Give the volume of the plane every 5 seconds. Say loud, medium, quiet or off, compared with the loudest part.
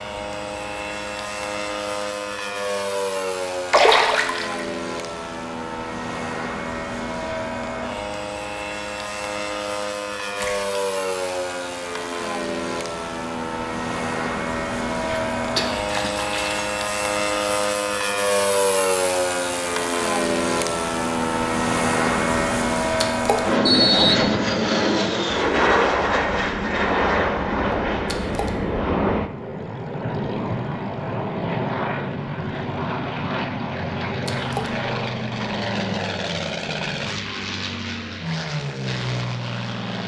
medium, medium, medium, loud, loud, loud, medium, medium.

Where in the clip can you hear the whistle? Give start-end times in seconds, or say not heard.
23.6-24.4.